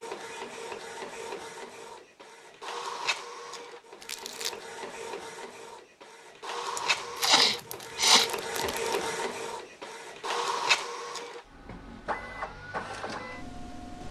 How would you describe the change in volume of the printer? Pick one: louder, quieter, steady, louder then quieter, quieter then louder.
louder then quieter.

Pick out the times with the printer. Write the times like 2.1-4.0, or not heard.
0.0-14.0.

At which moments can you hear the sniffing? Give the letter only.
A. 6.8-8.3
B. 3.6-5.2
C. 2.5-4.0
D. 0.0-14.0
A.